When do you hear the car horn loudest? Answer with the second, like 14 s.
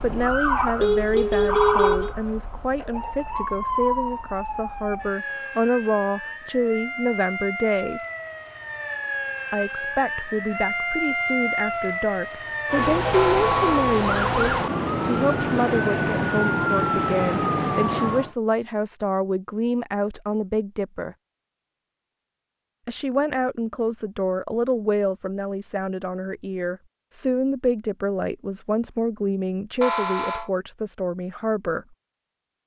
2 s.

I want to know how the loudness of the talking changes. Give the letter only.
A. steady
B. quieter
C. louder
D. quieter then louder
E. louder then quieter
A.